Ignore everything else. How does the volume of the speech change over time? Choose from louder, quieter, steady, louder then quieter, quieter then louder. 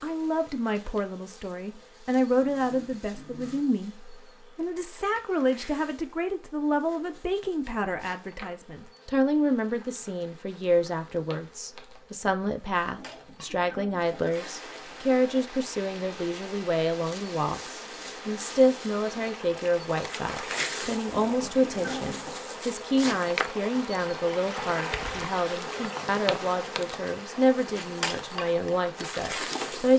steady.